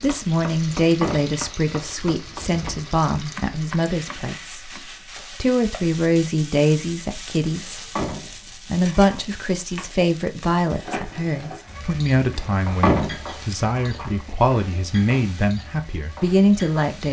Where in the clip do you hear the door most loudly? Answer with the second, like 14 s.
13 s.